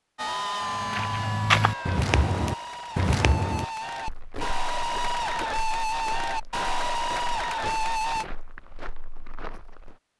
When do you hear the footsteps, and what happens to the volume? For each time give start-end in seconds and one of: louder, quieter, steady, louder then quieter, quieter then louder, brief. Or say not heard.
0.6-9.9 quieter.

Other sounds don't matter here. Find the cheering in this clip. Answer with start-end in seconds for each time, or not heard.
0.1-8.2.